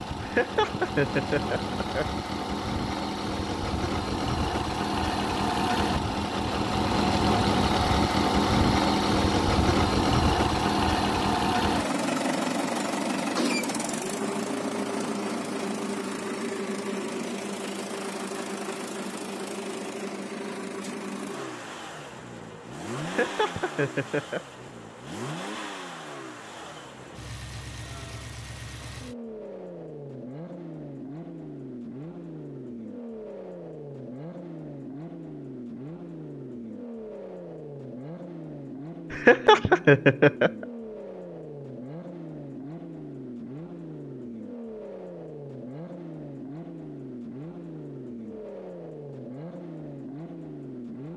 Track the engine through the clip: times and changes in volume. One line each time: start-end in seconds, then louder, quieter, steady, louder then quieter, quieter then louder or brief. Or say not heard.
0.0-51.1 quieter.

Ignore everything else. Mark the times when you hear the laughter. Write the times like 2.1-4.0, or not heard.
0.2-2.0, 23.0-24.4, 39.1-40.6.